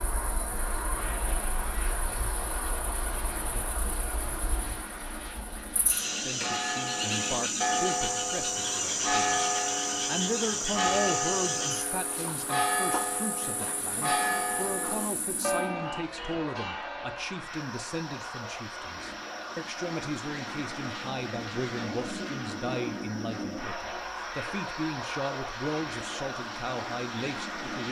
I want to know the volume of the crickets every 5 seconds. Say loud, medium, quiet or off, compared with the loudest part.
medium, loud, loud, quiet, quiet, quiet.